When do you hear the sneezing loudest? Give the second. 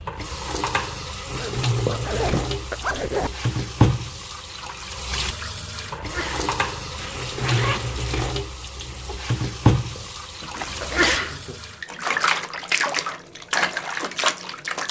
11 s.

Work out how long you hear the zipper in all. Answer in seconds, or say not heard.
4 s.